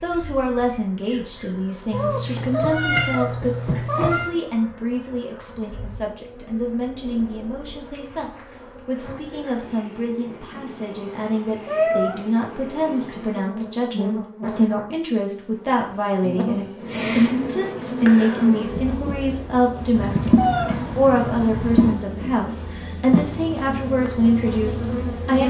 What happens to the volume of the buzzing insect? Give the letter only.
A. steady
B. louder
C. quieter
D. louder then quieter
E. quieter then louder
B.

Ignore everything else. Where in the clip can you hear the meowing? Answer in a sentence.
The meowing can be heard from 1.9 to 4.3 s, from 11.7 to 12.2 s and from 19.9 to 21.9 s.